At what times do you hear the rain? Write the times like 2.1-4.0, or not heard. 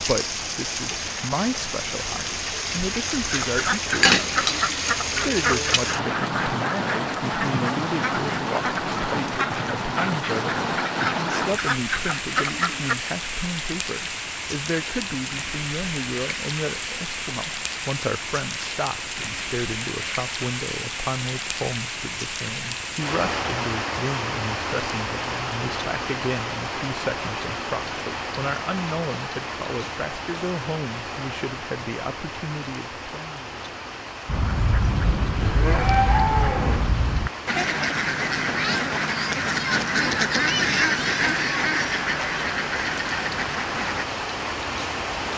0.0-45.3.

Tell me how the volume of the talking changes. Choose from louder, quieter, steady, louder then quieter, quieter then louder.
steady.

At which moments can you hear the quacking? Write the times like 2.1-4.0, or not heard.
3.2-12.9, 34.2-44.0.